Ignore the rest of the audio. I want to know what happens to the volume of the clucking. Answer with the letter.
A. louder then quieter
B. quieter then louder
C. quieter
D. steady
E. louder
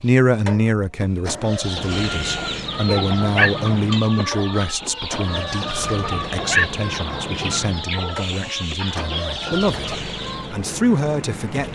D.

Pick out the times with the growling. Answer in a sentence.
You can hear the growling from 2.9 to 3.5 s and from 6.0 to 6.7 s.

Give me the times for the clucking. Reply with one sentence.
The clucking can be heard from 1.4 to 10.6 s.